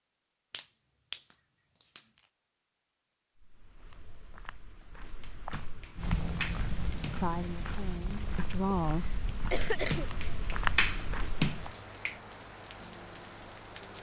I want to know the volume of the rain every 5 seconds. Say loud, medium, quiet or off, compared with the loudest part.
off, loud, medium.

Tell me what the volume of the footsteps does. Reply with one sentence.
The volume of the footsteps goes up.